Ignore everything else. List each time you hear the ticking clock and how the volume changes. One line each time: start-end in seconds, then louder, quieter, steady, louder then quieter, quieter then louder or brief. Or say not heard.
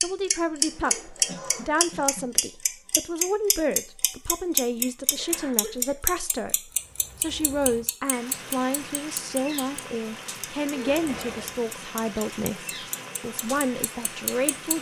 0.0-14.7 quieter.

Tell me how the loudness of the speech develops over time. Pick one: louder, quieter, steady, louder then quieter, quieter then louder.
steady.